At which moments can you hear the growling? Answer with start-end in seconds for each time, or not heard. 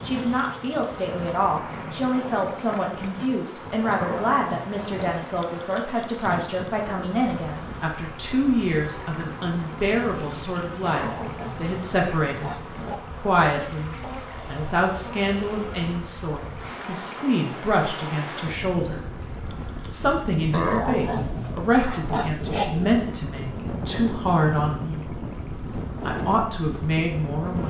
3.9-4.8, 10.8-13.2, 20.5-23.1.